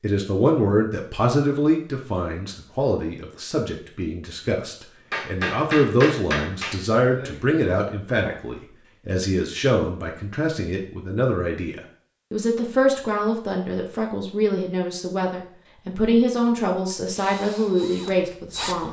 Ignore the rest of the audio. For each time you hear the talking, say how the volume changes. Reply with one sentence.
You can hear the talking from 0.0 to 18.8 s, at a steady volume.